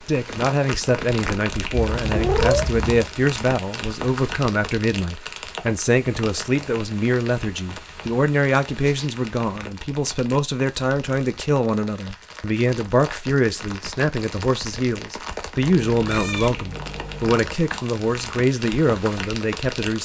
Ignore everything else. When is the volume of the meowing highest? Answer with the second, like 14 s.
2 s.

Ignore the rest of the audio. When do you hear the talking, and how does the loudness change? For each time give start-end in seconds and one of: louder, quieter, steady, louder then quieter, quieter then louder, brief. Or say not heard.
0.1-20.0 steady.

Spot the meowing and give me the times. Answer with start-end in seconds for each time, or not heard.
1.7-3.0, 15.6-17.4.